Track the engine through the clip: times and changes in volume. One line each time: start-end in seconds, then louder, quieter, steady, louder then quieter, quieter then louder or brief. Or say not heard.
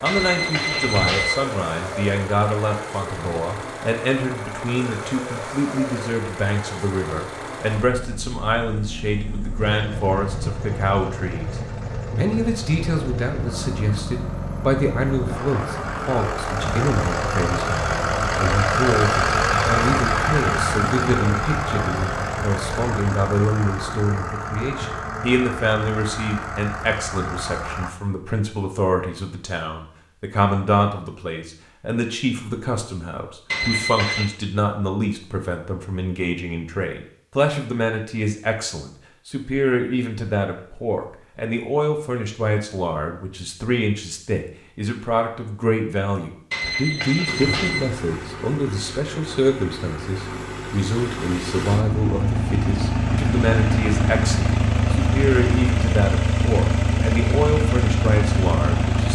0.0-27.9 louder then quieter
47.2-59.0 louder.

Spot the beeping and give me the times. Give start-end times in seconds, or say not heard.
0.1-1.4, 33.5-34.2, 46.5-47.9.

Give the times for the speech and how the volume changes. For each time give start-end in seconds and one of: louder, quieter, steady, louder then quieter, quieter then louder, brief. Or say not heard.
0.0-59.0 steady.